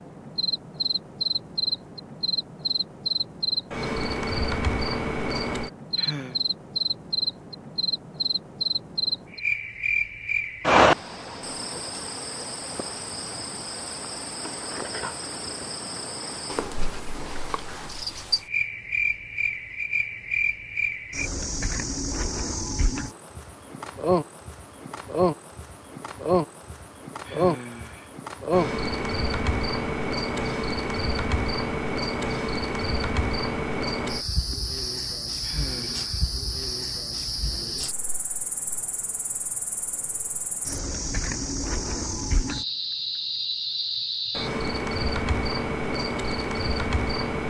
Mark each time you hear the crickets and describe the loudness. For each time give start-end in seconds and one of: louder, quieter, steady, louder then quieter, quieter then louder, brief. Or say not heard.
0.0-47.4 steady.